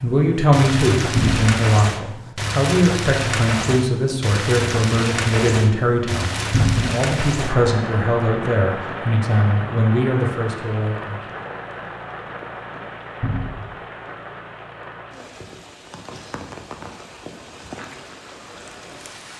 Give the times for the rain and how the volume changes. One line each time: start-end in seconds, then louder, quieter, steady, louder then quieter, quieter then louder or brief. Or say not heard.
0.0-19.3 quieter.